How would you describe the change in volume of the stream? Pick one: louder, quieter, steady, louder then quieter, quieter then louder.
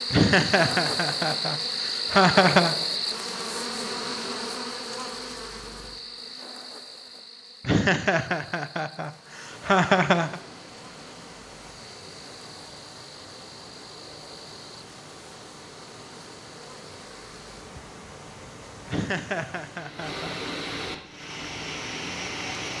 louder.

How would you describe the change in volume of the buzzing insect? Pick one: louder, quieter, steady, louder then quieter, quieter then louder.
quieter.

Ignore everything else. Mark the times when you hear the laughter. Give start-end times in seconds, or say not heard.
0.1-2.8, 7.7-10.4, 18.9-20.4.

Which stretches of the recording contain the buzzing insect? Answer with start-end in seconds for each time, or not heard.
0.0-18.9.